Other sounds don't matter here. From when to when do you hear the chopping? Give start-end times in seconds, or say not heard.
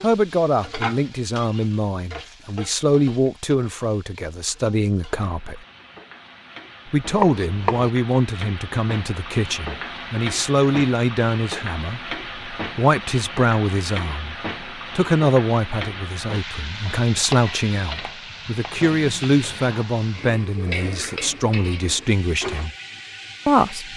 7.2-7.9, 17.3-19.2.